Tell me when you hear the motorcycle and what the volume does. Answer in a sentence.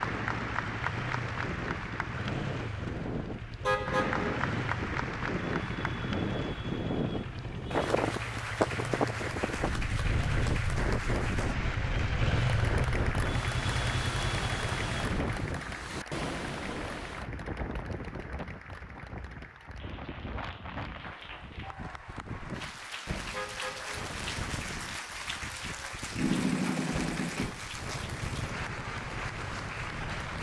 You can hear the motorcycle from 0.1 to 15.4 s, getting louder; and from 26.1 to 30.3 s, getting quieter.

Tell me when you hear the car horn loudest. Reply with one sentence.
The loudest moment of the car horn is at 4 seconds.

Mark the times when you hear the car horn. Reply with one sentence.
The car horn can be heard from 3.6 to 4.5 s and from 23.3 to 23.9 s.